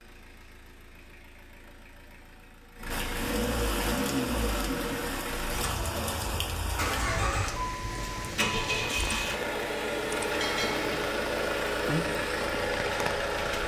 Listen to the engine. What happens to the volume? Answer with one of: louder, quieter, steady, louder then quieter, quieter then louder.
louder.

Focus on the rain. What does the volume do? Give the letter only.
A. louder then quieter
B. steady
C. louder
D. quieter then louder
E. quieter
B.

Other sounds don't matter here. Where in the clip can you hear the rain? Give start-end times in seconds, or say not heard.
2.9-13.6.